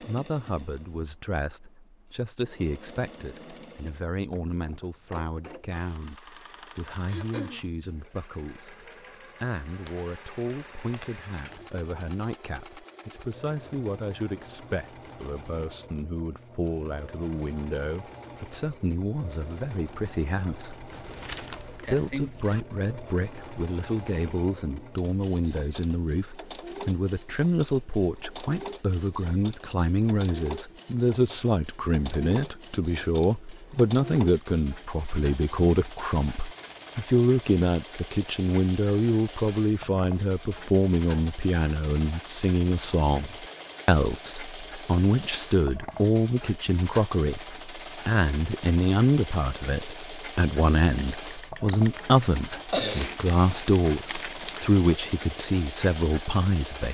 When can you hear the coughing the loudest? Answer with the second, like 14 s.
53 s.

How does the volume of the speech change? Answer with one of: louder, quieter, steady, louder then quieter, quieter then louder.
louder.